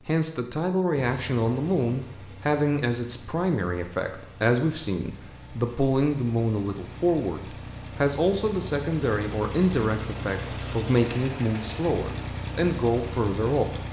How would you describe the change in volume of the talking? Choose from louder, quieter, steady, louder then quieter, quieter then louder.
steady.